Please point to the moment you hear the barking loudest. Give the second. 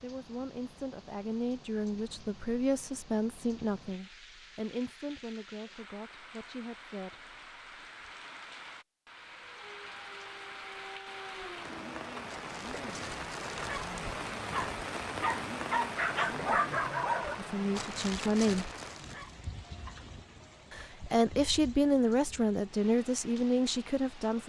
17 s.